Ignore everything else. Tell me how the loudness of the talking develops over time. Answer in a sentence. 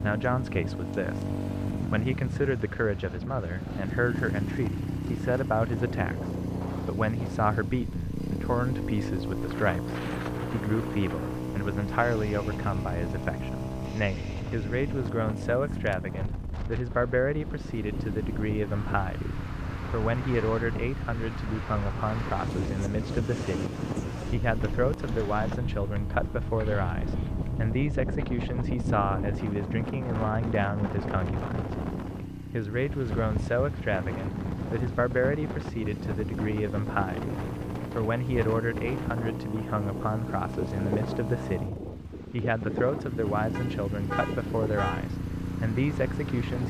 The loudness of the talking stays about the same.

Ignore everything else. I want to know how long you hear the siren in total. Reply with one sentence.
You can't hear the siren here.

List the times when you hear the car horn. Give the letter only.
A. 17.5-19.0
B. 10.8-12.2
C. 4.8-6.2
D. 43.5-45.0
D.